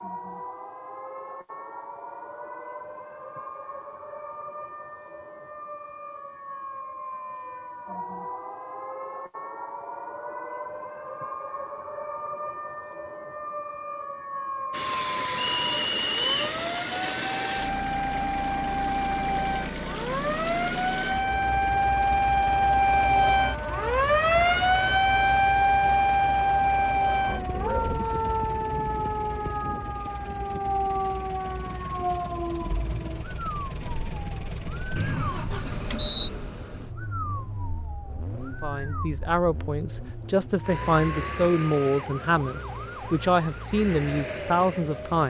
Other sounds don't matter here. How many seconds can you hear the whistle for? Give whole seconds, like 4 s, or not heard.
2 s.